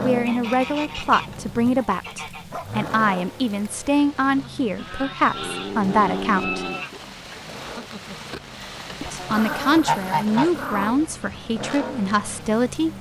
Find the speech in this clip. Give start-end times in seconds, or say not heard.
0.0-6.7, 9.0-12.9.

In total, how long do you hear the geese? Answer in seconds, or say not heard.
6 s.